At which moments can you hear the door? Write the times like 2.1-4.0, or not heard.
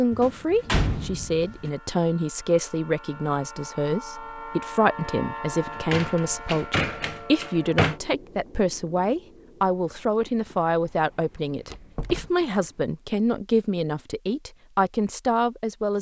0.1-1.7, 5.7-8.0, 11.7-12.3.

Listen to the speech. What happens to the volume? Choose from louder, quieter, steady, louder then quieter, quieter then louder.
steady.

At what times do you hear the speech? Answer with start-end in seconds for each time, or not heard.
0.0-15.9.